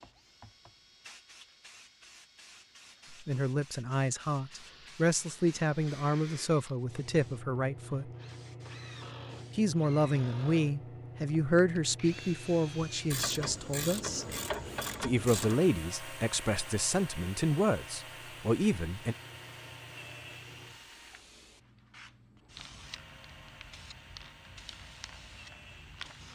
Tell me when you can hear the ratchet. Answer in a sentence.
You can hear the ratchet from 13.1 to 15.6 s.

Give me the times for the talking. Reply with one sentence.
The talking can be heard from 3.1 to 8.1 s, from 9.6 to 14.2 s and from 15.0 to 19.1 s.